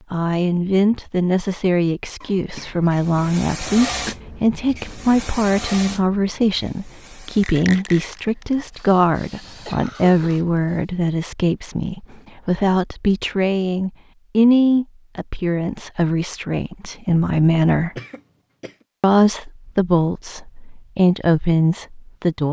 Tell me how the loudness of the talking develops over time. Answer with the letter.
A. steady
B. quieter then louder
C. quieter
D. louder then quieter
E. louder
A.